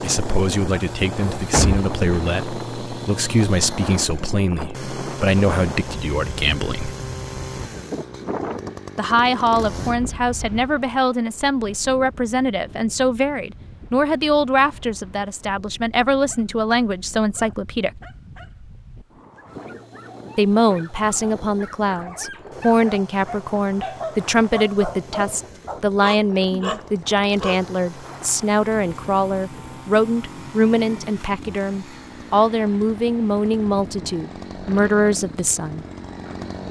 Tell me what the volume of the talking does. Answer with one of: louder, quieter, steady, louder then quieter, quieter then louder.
steady.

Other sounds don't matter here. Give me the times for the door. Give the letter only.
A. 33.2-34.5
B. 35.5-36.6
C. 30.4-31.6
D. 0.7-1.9
D.